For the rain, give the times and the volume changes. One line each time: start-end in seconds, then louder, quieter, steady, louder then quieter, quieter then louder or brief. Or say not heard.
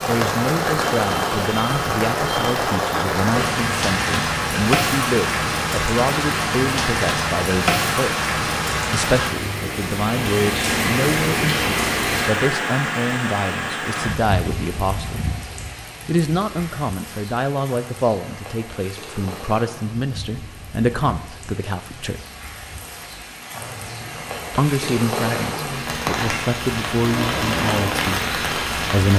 0.0-29.1 quieter then louder.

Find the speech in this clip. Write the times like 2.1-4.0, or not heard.
0.1-15.2, 16.1-22.2, 24.6-29.1.